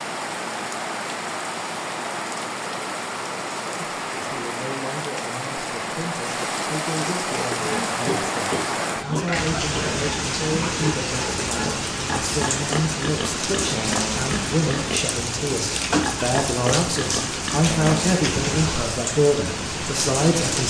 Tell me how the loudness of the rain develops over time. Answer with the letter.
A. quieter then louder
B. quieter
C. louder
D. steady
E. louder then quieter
D.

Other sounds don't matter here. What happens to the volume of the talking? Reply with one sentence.
The volume of the talking goes up.